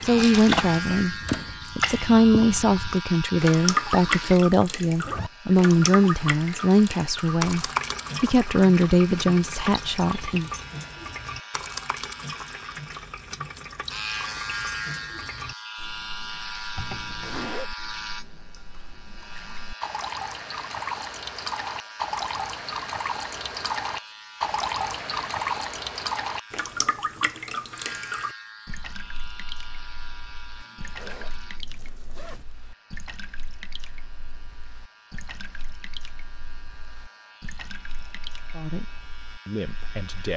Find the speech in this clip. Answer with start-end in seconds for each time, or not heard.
0.0-10.5, 38.5-40.3.